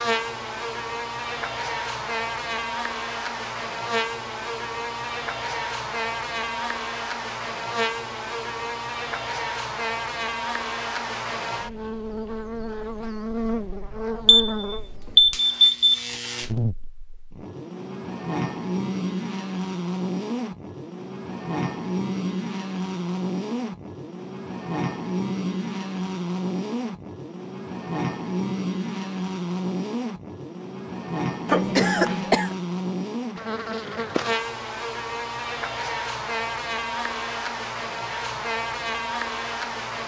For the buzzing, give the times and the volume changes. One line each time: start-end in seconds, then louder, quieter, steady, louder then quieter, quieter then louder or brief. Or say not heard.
0.0-40.0 steady.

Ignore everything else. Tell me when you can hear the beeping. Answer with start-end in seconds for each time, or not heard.
14.2-16.1.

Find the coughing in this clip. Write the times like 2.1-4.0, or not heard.
31.4-32.5.